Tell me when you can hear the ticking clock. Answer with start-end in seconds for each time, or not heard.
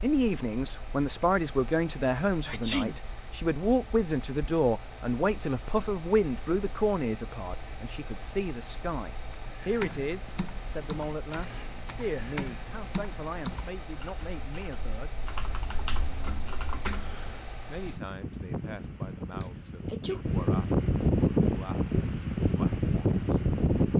not heard.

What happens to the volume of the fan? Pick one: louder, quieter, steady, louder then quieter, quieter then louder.
louder.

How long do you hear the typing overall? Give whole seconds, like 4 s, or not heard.
8 s.